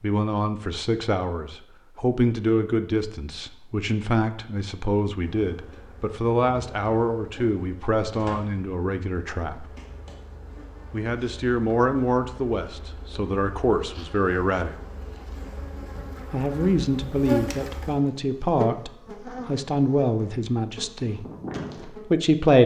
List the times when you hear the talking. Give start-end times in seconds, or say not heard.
0.0-9.7, 10.9-14.8, 16.3-21.2, 21.9-22.6.